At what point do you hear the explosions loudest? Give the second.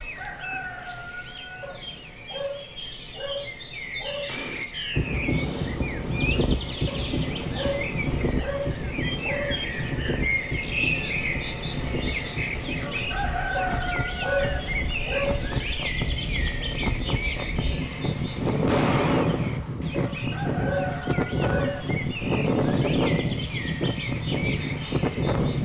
19 s.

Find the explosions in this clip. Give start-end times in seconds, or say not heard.
4.2-4.7, 18.6-19.8.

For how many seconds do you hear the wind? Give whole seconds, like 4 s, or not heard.
21 s.